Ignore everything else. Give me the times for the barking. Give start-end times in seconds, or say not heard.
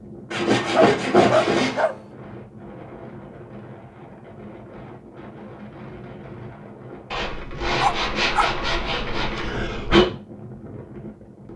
0.7-1.9, 7.8-8.5.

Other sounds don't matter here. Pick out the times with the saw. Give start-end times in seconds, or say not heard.
0.3-1.9, 7.1-10.1.